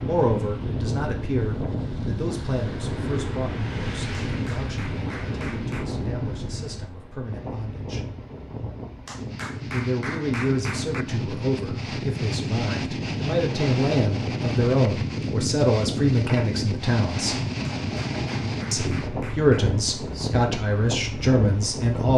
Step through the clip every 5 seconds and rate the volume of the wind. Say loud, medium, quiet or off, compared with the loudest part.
loud, medium, loud, loud, loud.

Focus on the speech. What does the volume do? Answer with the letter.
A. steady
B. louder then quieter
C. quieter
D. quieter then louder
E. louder
D.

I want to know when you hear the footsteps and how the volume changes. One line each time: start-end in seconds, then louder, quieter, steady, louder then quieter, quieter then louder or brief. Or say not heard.
not heard.